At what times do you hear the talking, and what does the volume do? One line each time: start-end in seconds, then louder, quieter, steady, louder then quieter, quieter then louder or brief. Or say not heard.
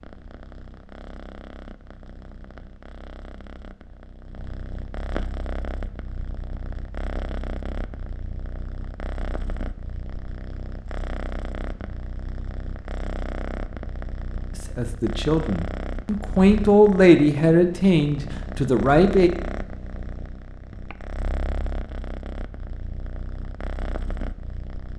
14.8-19.3 louder then quieter.